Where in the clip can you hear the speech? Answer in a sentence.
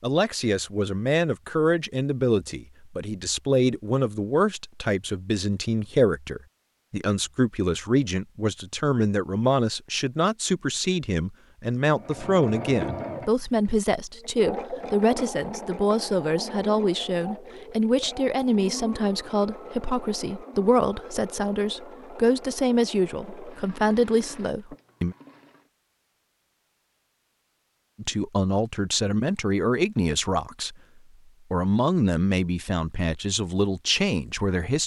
The speech can be heard from 0.0 to 25.1 s, from 27.9 to 30.8 s and from 31.5 to 34.8 s.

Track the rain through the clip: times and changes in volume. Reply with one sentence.
You can't hear the rain here.